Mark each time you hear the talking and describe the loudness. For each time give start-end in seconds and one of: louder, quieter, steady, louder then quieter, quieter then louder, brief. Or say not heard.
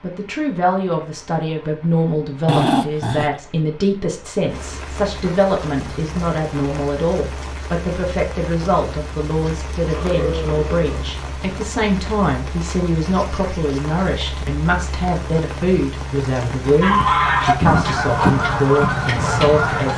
0.0-19.9 steady.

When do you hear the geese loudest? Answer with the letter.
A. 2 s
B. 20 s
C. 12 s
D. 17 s
D.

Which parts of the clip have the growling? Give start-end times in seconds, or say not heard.
2.5-3.4, 9.8-11.1, 17.6-18.4.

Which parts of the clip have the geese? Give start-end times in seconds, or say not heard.
16.8-19.9.